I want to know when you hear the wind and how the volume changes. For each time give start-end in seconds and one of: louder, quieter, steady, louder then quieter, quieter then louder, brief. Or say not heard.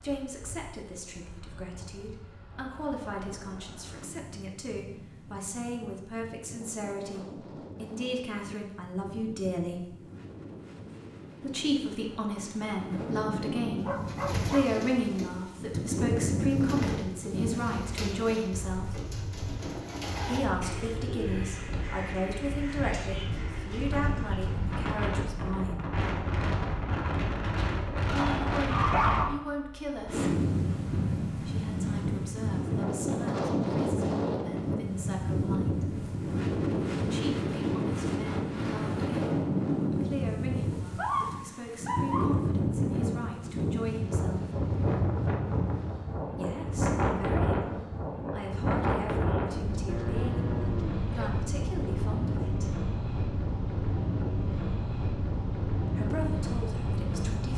0.0-57.5 louder.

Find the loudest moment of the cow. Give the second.
50 s.